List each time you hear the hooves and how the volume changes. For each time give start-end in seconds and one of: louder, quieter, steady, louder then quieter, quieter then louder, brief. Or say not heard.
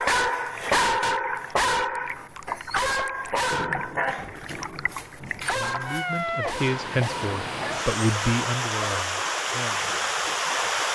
not heard.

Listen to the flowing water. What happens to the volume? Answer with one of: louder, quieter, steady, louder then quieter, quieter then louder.
louder.